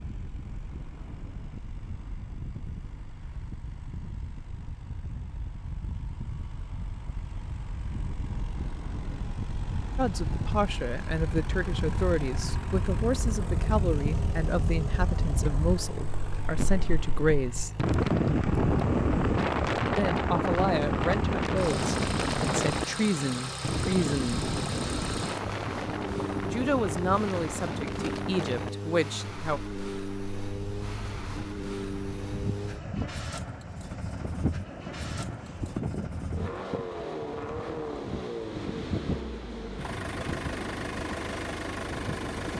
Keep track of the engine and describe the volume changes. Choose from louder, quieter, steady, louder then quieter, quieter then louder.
louder.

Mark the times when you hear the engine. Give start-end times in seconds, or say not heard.
0.0-42.5.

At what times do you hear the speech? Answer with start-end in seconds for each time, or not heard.
9.9-17.7, 19.9-24.5, 26.5-29.6.